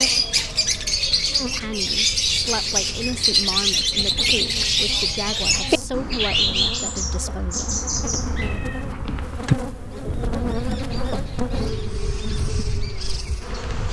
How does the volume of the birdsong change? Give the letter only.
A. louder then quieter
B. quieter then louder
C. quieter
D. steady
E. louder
C.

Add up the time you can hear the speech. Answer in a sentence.
The speech can be heard for 6 seconds in total.